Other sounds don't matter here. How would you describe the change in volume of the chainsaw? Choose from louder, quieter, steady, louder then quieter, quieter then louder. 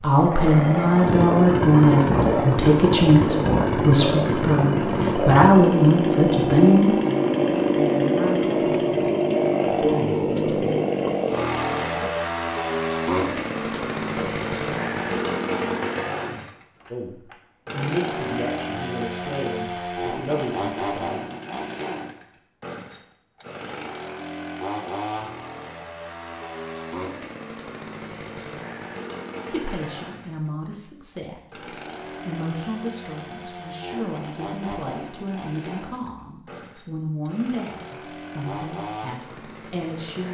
quieter.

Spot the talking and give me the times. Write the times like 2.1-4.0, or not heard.
0.0-9.1, 9.7-10.8, 16.9-21.2, 29.5-40.2.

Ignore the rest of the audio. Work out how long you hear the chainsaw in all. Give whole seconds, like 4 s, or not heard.
40 s.